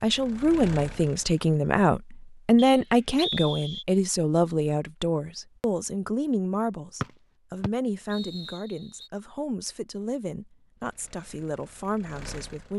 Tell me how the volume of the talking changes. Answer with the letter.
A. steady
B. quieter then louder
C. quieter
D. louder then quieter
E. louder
C.